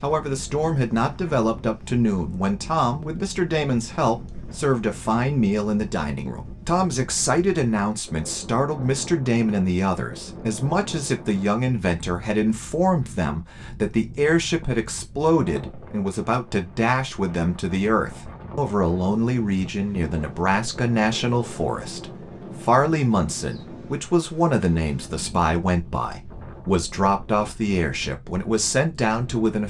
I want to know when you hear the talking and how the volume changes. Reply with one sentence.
You can hear the talking from 0.0 to 29.6 s, at a steady volume.